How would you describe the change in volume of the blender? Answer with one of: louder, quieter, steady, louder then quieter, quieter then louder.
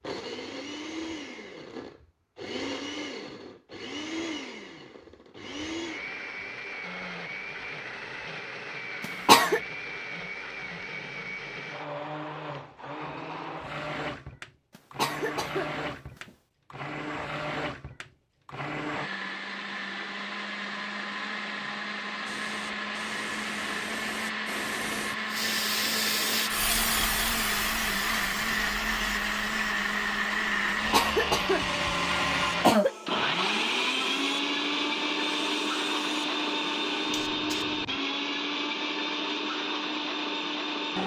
louder.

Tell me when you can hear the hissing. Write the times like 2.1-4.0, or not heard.
22.2-38.0.